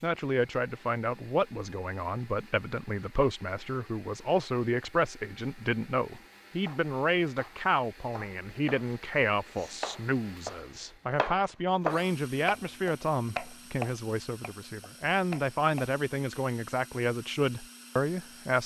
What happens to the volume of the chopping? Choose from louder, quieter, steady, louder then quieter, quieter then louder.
louder then quieter.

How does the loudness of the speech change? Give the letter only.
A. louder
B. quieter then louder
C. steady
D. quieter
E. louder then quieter
C.